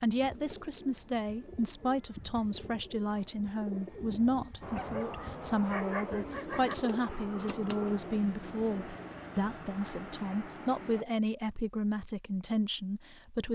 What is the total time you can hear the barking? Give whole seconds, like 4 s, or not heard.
2 s.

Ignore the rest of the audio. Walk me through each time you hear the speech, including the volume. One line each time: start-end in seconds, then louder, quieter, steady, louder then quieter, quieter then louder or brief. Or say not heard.
0.0-13.5 steady.